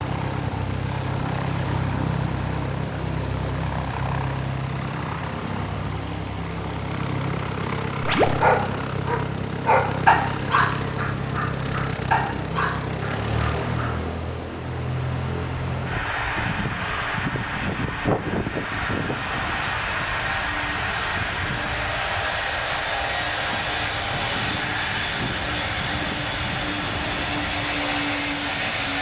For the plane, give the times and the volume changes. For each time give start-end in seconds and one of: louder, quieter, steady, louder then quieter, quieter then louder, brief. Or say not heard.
0.0-28.9 steady.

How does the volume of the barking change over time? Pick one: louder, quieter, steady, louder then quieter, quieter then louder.
quieter.